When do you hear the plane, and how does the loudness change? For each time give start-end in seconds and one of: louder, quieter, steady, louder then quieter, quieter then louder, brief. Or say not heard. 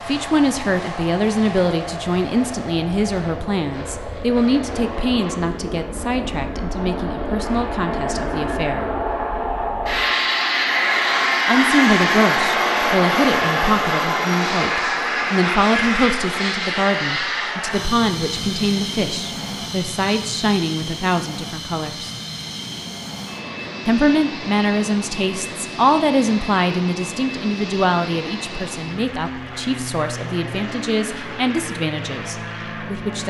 0.0-33.2 louder then quieter.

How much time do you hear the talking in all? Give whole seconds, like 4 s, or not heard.
29 s.